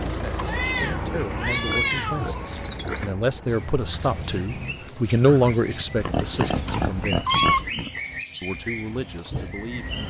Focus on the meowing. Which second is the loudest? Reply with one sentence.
The loudest moment of the meowing is at 7 seconds.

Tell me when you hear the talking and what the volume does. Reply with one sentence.
You can hear the talking from 0.1 to 7.2 s, getting louder then quieter; and briefly from 8.4 to 10.0 s.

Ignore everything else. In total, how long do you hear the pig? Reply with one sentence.
The pig can be heard for 4 seconds in total.